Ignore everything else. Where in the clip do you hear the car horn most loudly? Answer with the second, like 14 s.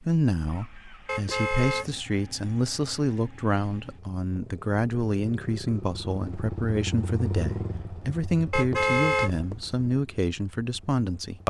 9 s.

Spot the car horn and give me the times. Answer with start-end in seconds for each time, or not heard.
1.1-1.9, 8.5-9.8.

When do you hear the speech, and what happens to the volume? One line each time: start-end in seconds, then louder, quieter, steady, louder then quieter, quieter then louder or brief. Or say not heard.
0.0-11.4 steady.